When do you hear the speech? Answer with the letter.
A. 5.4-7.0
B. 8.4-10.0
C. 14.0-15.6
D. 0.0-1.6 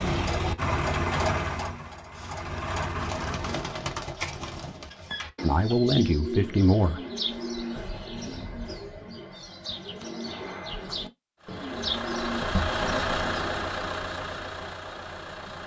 A.